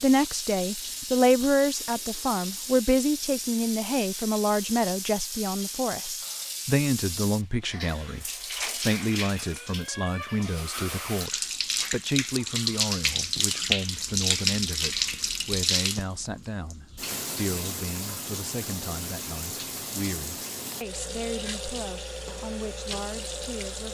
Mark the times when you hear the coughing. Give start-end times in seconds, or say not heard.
not heard.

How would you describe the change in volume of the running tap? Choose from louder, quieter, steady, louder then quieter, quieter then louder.
louder then quieter.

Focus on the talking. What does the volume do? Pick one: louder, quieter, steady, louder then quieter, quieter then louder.
quieter.